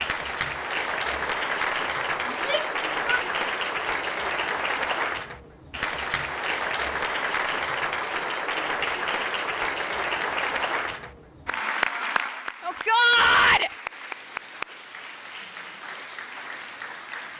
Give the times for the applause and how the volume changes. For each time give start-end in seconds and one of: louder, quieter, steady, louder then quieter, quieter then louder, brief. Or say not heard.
0.0-17.3 quieter.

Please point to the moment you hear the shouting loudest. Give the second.
13 s.